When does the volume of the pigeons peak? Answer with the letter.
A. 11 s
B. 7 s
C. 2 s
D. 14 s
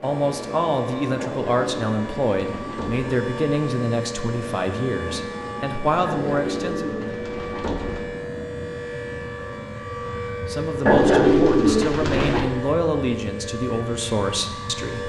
A.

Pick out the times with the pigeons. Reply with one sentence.
The pigeons can be heard from 1.1 to 3.1 s, from 6.0 to 8.1 s and from 10.8 to 12.4 s.